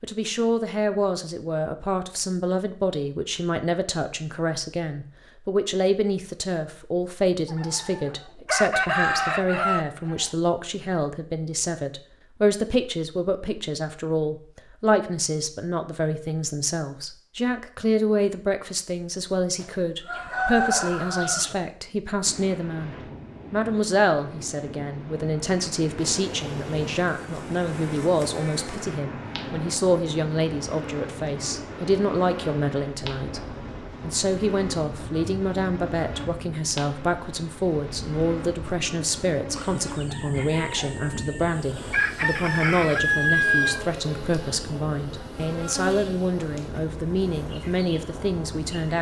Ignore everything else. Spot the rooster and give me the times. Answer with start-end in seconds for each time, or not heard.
7.5-10.2, 19.6-21.6, 39.5-43.9.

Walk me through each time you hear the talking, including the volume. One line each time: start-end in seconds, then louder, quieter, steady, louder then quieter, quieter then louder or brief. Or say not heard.
0.0-48.9 steady.